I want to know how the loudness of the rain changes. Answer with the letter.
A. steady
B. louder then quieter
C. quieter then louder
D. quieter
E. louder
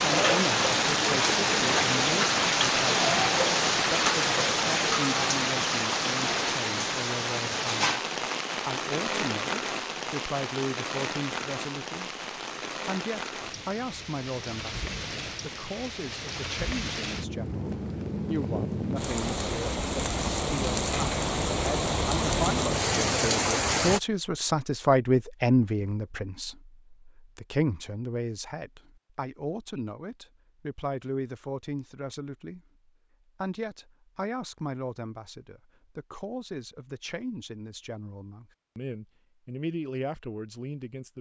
C.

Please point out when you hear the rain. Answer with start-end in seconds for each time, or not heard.
0.0-24.0.